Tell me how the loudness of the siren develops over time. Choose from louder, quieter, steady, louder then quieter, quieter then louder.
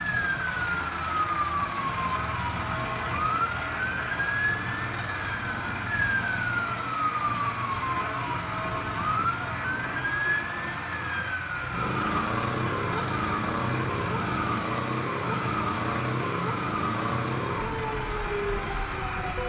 steady.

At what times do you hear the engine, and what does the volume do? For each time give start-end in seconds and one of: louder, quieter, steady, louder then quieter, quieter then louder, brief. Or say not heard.
0.0-19.4 steady.